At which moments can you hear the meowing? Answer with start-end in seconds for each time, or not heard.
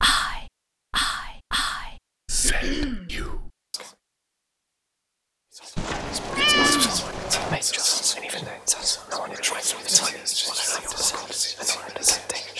5.8-7.5.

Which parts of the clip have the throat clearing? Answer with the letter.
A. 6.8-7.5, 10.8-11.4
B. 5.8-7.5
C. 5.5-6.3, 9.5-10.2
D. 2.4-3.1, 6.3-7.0
D.